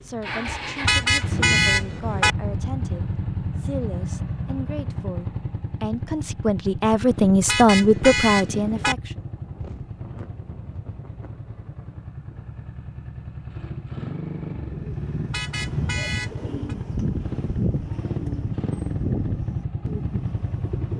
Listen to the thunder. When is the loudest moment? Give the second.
10 s.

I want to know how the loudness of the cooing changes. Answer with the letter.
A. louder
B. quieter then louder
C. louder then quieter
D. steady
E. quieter
D.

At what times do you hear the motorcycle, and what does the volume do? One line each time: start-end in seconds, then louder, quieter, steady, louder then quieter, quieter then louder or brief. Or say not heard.
0.0-20.9 quieter then louder.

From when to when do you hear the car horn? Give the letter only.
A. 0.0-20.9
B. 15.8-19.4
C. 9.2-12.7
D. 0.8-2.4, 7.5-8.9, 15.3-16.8
D.